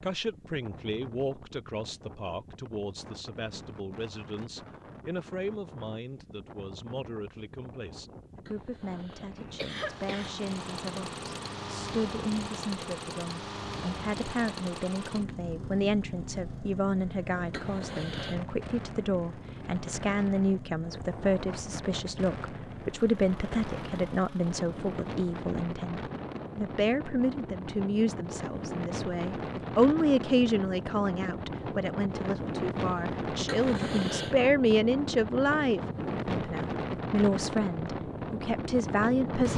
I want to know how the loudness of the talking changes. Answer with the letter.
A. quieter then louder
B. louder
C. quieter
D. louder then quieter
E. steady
B.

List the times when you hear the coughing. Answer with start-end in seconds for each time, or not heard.
8.4-10.3, 17.5-18.4, 33.5-34.4.